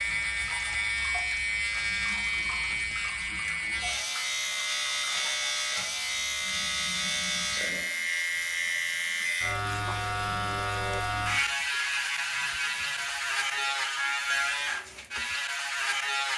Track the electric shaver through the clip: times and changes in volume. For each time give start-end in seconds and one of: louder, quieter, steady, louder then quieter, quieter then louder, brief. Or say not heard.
0.0-16.3 steady.